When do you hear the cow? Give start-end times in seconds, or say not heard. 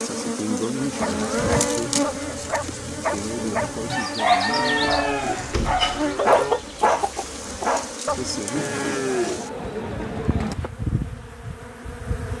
1.0-2.6, 4.5-6.7, 8.6-10.6.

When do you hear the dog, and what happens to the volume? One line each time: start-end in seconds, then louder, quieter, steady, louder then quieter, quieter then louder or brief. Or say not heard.
0.8-8.3 louder.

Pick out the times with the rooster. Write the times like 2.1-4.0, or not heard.
3.9-7.7.